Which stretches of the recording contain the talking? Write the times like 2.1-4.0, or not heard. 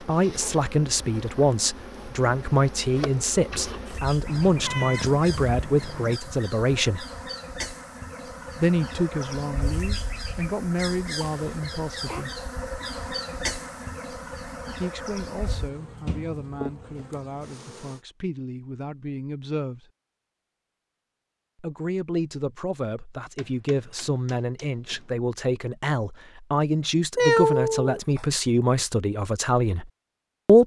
0.1-7.0, 8.6-12.3, 14.7-19.9, 21.6-30.6.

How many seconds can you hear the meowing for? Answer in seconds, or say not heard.
4 s.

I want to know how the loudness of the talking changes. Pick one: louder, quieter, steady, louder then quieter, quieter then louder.
quieter then louder.